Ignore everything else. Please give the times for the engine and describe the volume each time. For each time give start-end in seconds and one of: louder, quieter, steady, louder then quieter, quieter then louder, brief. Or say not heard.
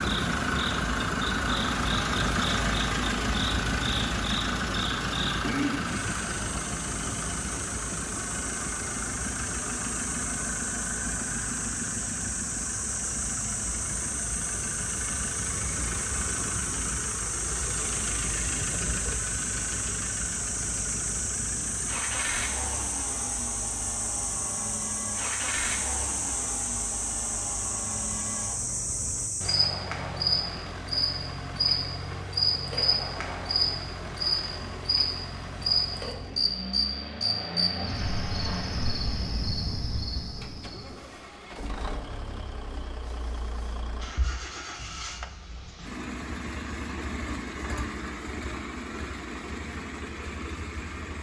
0.0-51.1 quieter.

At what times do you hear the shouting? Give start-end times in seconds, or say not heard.
not heard.